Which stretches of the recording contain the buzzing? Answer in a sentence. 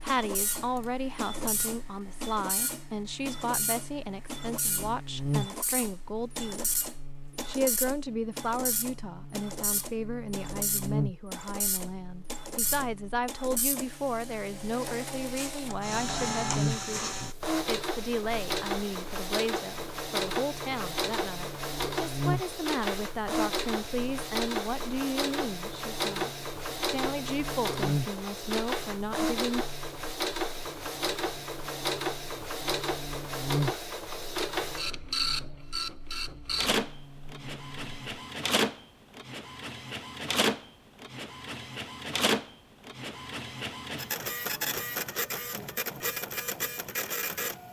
The buzzing can be heard from 0.0 to 38.0 s.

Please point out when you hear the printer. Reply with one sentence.
The printer can be heard from 0.0 to 47.6 s.